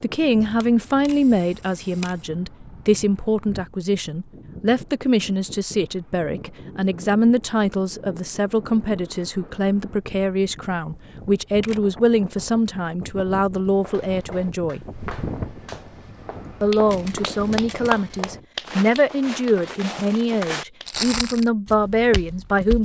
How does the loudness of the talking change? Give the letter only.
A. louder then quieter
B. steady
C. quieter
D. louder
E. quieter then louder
B.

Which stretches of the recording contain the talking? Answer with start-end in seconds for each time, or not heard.
0.0-14.8, 16.6-22.7.